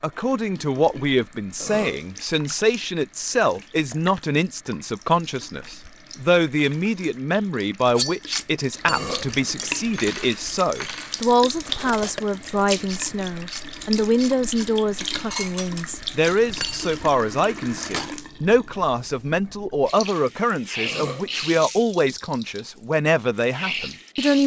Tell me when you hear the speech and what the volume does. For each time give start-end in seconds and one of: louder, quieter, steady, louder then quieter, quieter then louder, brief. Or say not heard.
0.0-24.4 steady.